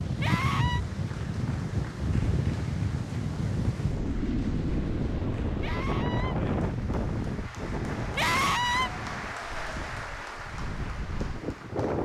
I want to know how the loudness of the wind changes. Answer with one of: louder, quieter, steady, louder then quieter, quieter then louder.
quieter.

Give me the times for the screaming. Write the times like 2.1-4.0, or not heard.
0.2-0.8, 5.6-6.3, 8.2-8.9.